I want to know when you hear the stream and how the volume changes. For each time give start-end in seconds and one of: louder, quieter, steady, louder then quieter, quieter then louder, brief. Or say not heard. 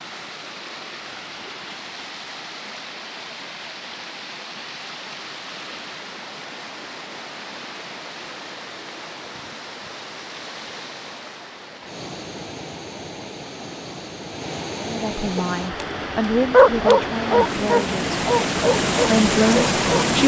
0.0-20.2 louder.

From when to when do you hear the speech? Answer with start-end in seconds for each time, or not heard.
14.8-18.1, 19.1-20.2.